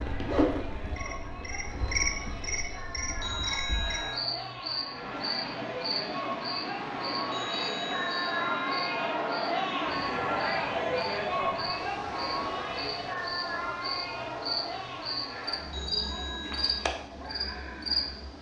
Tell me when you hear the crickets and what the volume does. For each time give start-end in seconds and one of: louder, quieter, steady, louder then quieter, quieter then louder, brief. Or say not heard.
0.0-18.1 quieter then louder.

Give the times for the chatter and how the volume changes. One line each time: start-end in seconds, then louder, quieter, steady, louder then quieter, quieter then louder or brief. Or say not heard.
0.0-18.3 louder then quieter.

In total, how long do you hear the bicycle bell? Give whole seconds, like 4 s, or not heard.
4 s.